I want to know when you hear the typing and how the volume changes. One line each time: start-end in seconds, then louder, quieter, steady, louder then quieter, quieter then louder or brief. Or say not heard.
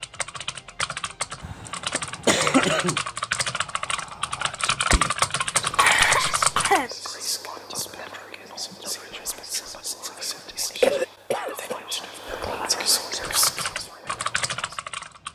0.0-6.8 louder
13.2-15.3 brief.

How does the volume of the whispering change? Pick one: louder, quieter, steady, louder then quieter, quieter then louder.
louder.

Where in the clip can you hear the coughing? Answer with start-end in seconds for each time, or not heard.
1.4-3.0, 5.8-6.9, 10.8-11.8.